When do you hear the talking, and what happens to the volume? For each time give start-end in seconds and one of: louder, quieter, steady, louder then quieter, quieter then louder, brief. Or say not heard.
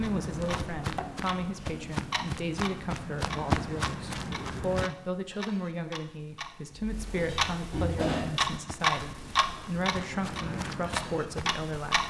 0.0-12.0 steady.